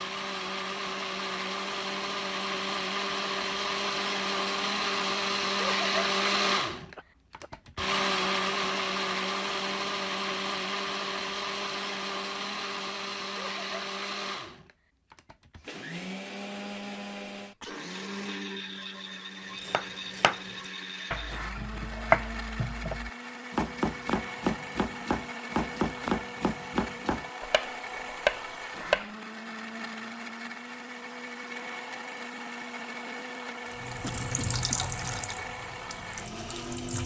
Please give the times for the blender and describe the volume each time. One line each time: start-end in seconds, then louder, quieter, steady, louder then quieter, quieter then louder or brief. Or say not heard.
0.0-37.0 quieter.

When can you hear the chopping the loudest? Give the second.
22 s.